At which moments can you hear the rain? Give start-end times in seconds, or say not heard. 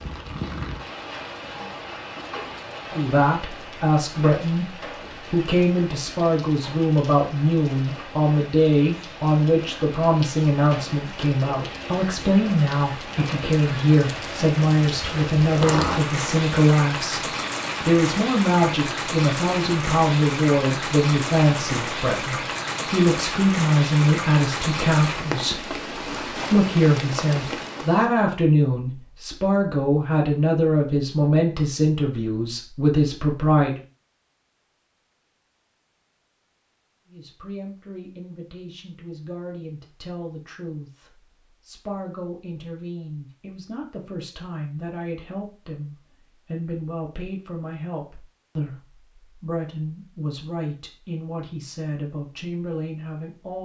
0.0-28.1.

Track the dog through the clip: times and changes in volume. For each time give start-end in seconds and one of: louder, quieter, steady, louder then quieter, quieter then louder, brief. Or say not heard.
not heard.